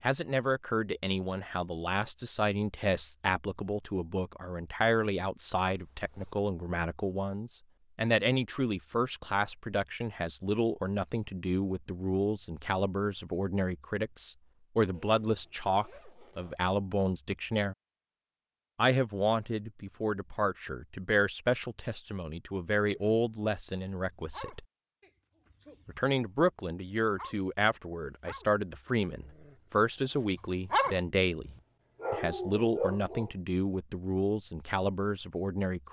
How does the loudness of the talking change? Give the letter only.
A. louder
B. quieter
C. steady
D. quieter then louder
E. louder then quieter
C.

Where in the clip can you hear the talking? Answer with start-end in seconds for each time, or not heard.
0.0-17.8, 18.8-24.6, 25.9-35.8.